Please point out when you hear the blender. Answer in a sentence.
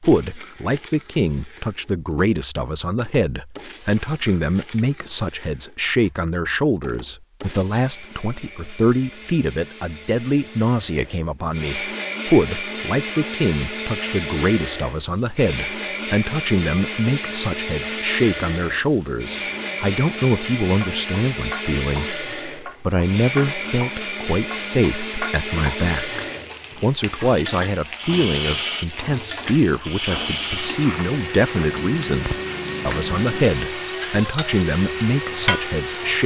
You can hear the blender from 0.0 to 36.2 s.